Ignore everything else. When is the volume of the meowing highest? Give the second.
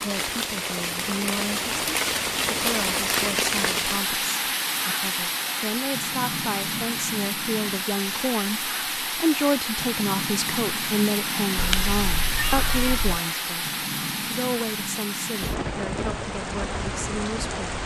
12 s.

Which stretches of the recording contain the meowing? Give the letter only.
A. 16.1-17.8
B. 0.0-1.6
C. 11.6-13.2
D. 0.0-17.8
C.